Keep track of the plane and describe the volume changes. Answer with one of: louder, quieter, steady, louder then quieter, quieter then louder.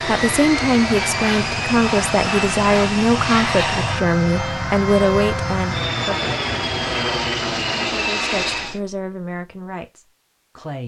steady.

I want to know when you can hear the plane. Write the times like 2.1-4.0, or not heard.
0.0-8.8.